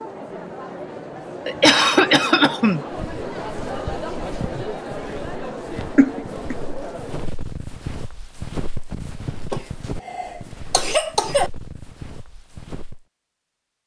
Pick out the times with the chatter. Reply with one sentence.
The chatter can be heard from 0.0 to 7.3 s.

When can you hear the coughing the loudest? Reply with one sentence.
The loudest moment of the coughing is at 2 seconds.